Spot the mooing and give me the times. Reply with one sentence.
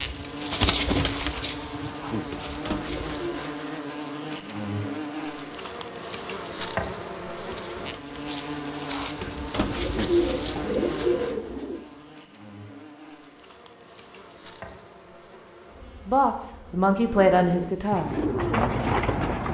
You can't hear the mooing here.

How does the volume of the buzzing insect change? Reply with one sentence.
The loudness of the buzzing insect goes down.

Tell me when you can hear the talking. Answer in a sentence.
The talking can be heard from 16.1 to 18.2 s.